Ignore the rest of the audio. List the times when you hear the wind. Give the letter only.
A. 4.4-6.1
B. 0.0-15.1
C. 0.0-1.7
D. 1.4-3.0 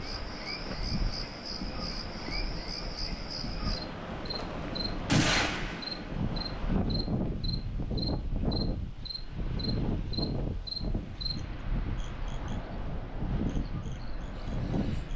B.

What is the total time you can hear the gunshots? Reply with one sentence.
The gunshots can be heard for 2 seconds in total.